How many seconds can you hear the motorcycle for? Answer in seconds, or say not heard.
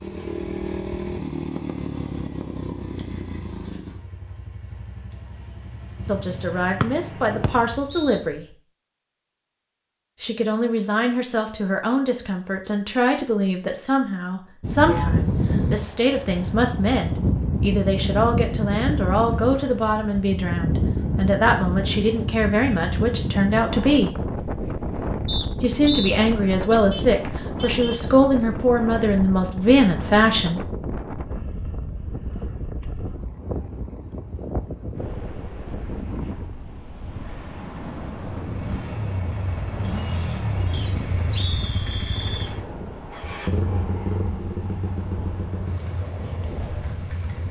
17 s.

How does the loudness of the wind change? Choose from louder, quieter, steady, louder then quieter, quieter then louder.
quieter.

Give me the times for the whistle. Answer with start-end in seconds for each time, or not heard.
6.8-8.2, 25.2-26.1, 40.7-42.5.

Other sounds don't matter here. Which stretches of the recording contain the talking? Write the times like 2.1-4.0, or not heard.
6.0-8.4, 10.2-24.1, 25.6-30.6.